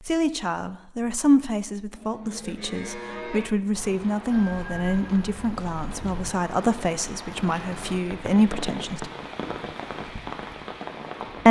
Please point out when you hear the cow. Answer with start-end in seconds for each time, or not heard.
1.9-3.5.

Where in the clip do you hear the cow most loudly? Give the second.
3 s.